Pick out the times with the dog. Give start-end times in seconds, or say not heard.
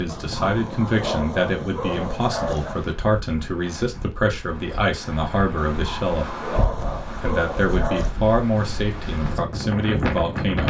0.1-2.9, 5.5-8.2.